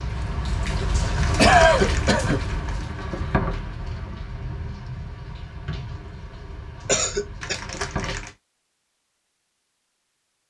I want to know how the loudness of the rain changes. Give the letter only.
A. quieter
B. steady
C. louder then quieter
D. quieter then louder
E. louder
A.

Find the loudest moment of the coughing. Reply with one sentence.
The loudest moment of the coughing is at 2 seconds.